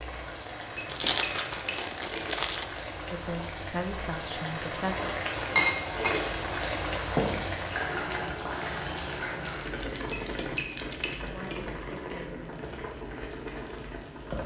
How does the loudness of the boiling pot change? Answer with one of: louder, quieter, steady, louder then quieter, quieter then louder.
louder then quieter.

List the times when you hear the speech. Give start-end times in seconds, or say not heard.
3.1-5.0, 11.2-12.7.